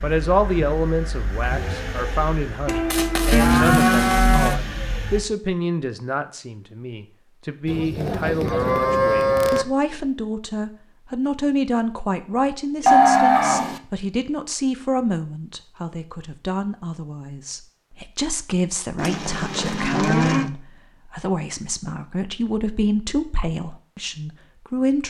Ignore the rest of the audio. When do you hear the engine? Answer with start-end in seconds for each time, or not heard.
0.0-5.2.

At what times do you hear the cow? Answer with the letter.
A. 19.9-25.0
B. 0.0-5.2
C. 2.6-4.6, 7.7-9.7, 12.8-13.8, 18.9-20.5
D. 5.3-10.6
C.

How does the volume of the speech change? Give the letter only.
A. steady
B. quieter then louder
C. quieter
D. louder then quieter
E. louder
A.